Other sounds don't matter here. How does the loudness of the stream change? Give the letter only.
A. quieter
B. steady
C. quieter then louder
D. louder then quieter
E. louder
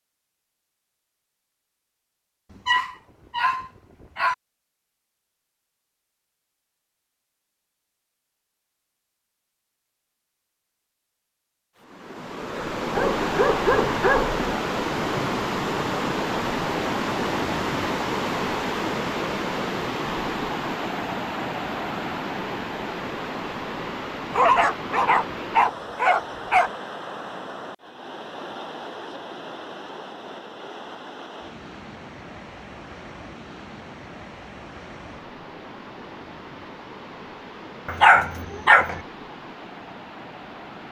A.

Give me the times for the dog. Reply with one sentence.
The dog can be heard from 2.5 to 4.3 s, from 12.9 to 14.5 s, from 24.3 to 26.7 s and from 37.9 to 39.0 s.